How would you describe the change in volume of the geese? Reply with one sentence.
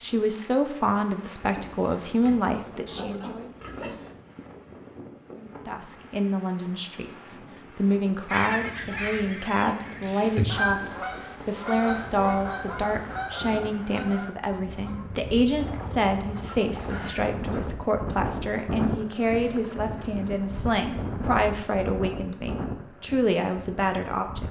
The volume of the geese goes up, then down.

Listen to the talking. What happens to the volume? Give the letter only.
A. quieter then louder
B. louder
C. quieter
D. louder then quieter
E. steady
E.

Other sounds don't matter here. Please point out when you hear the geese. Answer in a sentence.
The geese can be heard from 8.2 to 17.6 s.